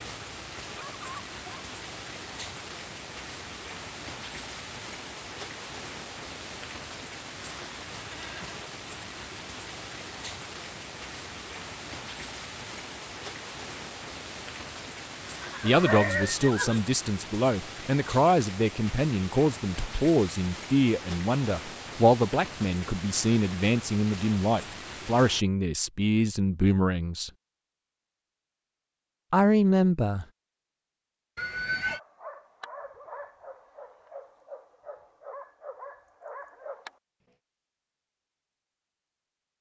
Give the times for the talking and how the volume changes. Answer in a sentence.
The talking can be heard from 15.6 to 27.3 s, at a steady volume; and briefly from 29.3 to 30.2 s.